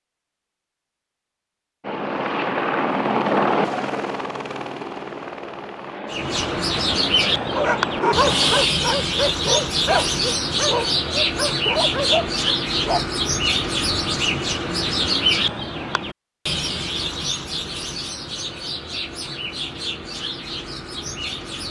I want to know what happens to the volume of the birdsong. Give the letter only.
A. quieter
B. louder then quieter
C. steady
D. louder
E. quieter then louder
A.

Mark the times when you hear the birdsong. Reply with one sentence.
The birdsong can be heard from 6.1 to 21.6 s.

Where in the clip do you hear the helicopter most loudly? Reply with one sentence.
The loudest moment of the helicopter is at 3 seconds.